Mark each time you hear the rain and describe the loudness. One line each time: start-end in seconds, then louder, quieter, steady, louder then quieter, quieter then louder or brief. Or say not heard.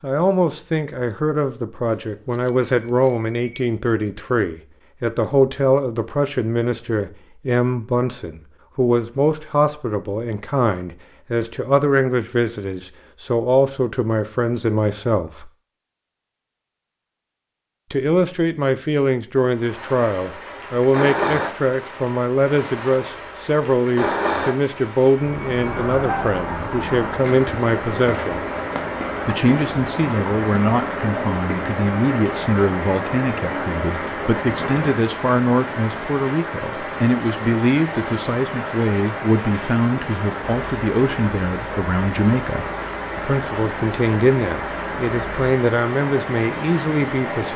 19.5-47.5 steady.